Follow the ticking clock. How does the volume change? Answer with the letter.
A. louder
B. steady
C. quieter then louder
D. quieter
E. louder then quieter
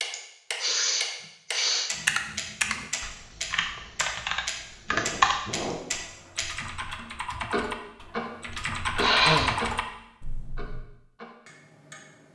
D.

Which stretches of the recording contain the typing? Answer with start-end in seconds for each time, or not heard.
1.9-10.8.